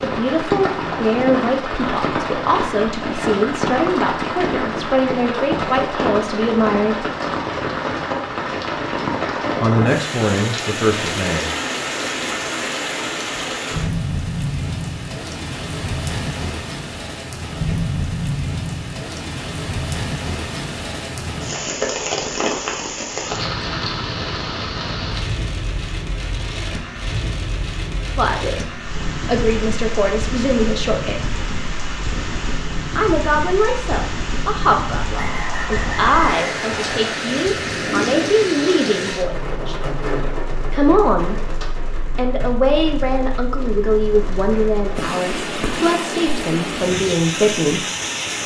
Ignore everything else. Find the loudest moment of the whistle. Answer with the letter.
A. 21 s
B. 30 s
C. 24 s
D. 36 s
D.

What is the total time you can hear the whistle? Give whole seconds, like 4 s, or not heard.
2 s.